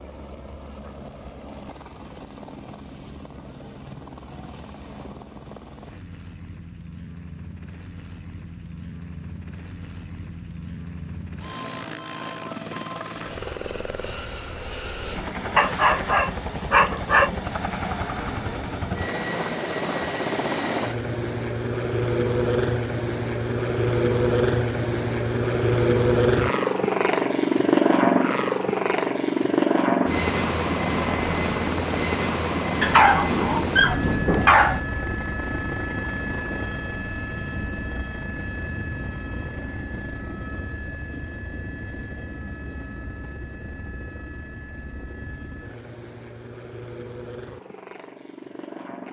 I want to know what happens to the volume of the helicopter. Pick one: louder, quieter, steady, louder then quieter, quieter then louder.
louder then quieter.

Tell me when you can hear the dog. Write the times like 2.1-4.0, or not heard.
15.6-17.3, 32.8-34.8.